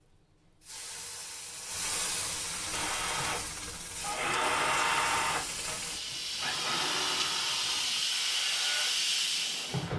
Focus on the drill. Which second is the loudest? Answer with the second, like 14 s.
5 s.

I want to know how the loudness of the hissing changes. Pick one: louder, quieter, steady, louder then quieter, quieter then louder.
louder.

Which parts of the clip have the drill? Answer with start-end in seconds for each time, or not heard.
2.7-9.9.